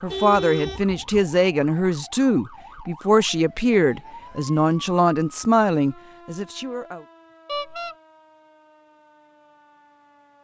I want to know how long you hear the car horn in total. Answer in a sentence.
You can hear the car horn for 2 seconds altogether.